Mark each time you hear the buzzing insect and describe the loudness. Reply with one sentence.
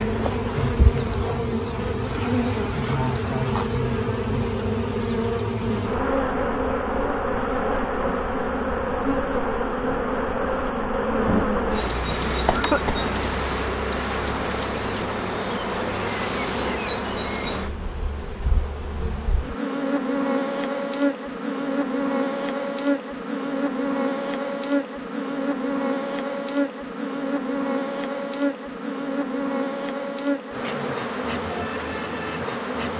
You can hear the buzzing insect from 0.0 to 32.9 s, at a steady volume.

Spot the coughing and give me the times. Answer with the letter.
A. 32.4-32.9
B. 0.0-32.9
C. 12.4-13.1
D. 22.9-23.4
C.